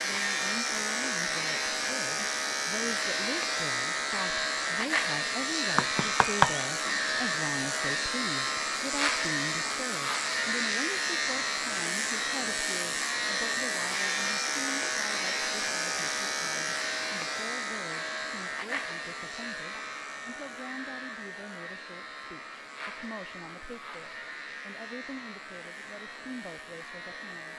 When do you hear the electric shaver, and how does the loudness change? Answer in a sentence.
You can hear the electric shaver from 0.0 to 27.5 s, getting quieter.